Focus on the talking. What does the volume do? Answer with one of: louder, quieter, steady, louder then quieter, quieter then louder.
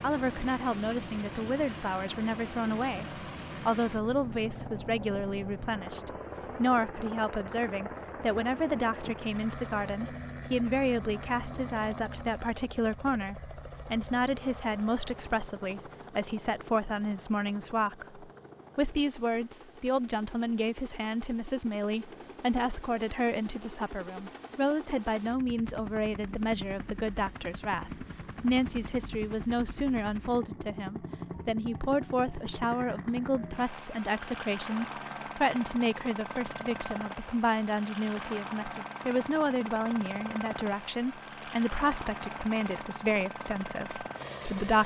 steady.